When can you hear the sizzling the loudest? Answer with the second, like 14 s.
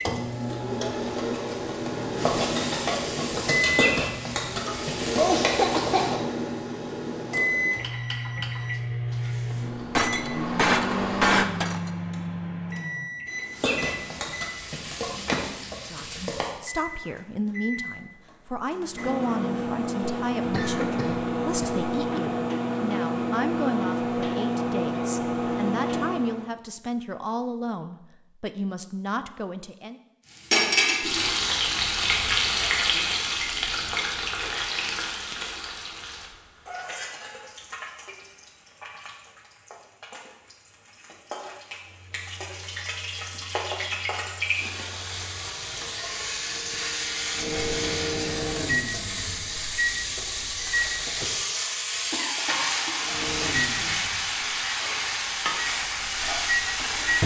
31 s.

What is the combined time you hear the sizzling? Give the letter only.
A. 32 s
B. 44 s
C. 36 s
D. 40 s
C.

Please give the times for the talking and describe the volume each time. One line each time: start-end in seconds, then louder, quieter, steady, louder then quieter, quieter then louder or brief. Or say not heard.
15.8-30.0 steady.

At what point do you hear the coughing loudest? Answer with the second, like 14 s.
5 s.